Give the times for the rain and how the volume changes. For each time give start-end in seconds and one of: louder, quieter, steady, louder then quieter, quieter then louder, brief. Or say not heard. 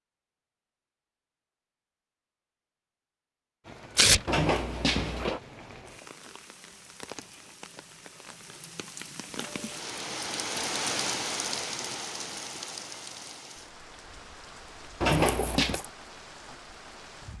3.6-17.3 louder then quieter.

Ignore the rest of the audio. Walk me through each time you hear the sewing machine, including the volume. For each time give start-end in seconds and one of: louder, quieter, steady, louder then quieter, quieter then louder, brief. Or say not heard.
not heard.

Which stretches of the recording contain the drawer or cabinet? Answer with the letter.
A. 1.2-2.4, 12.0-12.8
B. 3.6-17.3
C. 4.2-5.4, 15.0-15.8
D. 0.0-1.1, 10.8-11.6
C.